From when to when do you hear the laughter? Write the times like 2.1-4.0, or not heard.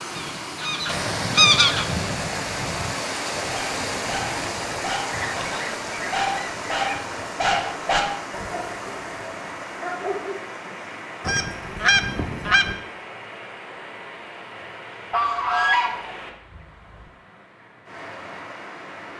not heard.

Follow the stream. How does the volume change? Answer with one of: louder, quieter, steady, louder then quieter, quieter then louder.
quieter.